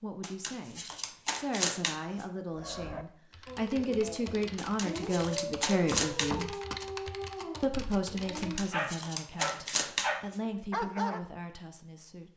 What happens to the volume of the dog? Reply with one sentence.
The volume of the dog goes up.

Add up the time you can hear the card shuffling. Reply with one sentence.
The card shuffling can be heard for 6 seconds in total.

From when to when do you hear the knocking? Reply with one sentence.
You can hear the knocking from 5.9 to 6.8 s.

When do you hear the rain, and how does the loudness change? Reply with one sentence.
The rain can't be heard in this clip.